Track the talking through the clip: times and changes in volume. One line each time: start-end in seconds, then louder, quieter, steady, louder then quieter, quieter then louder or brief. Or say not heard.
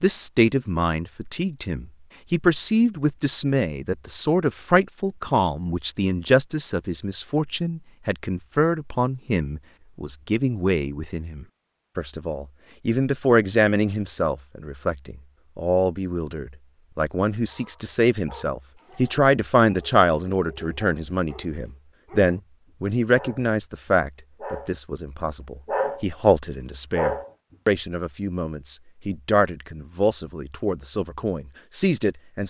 0.0-32.4 steady.